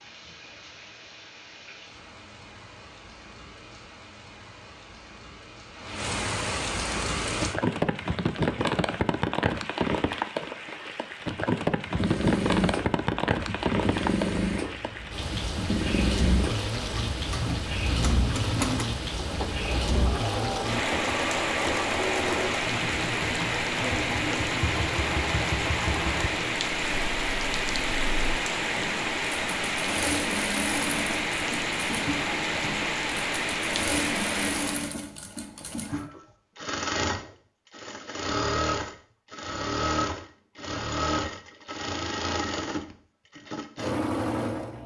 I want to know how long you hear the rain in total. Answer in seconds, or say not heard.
35 s.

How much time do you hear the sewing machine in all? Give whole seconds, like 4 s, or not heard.
33 s.